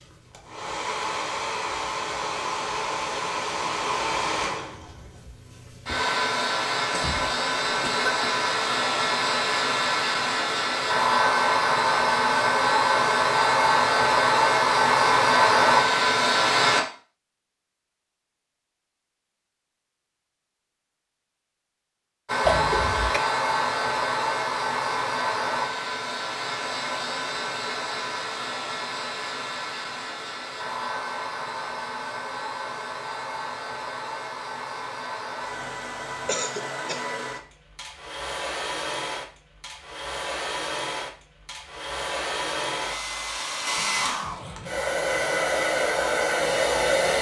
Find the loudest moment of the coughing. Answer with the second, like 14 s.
23 s.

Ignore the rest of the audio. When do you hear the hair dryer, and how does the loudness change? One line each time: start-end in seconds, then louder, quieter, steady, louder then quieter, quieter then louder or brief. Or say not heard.
0.0-16.9 louder
22.2-47.1 quieter then louder.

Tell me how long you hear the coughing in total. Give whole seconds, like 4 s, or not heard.
3 s.